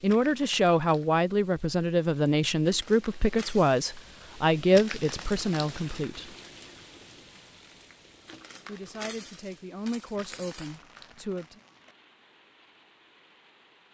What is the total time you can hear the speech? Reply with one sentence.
You can hear the speech for 9 seconds altogether.